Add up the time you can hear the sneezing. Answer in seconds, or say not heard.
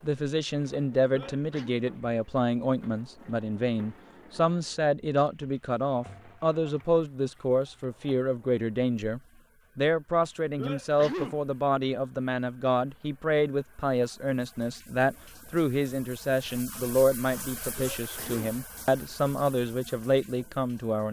2 s.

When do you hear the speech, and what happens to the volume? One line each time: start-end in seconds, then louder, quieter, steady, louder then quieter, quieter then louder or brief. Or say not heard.
0.0-21.0 steady.